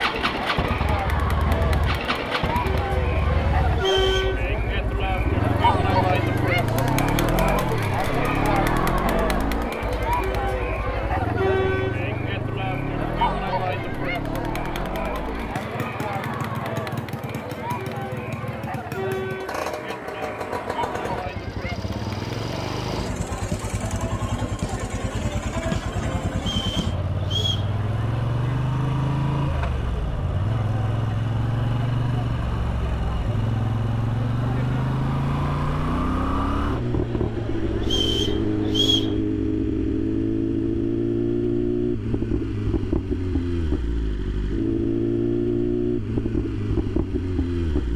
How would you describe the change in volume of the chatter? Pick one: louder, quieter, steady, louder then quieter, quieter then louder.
quieter.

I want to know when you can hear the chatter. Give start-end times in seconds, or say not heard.
0.0-39.2.